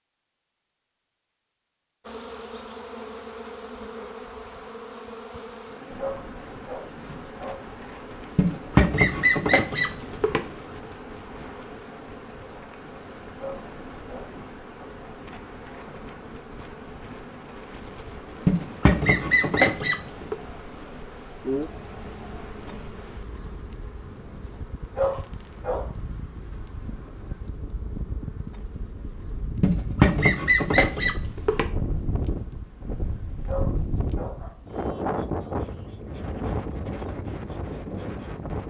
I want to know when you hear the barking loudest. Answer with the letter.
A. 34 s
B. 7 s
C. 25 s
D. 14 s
C.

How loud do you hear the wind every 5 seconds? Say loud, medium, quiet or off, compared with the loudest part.
off, quiet, quiet, quiet, quiet, medium, loud, loud.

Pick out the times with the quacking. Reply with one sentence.
The quacking can be heard from 8.3 to 10.4 s, from 18.4 to 20.4 s and from 29.6 to 31.6 s.